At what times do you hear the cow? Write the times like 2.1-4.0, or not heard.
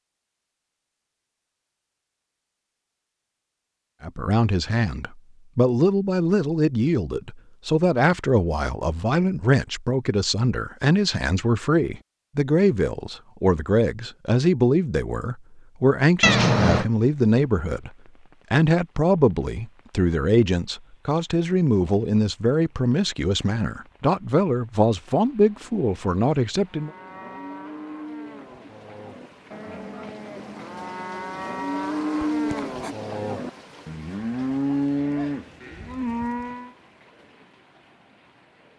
26.6-36.8.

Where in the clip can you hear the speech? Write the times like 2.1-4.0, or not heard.
4.0-17.9, 18.5-26.9.